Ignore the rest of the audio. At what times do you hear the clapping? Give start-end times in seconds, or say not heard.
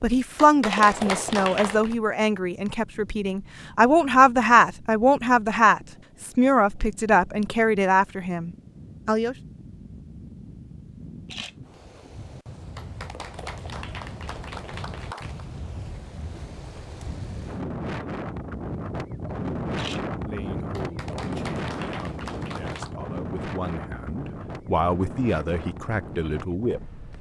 0.3-1.9, 12.8-15.4, 20.7-22.9.